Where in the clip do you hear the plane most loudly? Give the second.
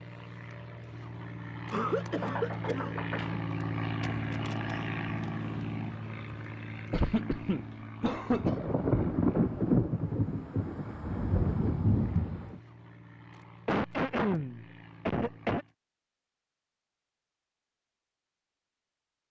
4 s.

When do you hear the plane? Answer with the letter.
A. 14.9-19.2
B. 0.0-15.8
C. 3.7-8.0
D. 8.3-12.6
B.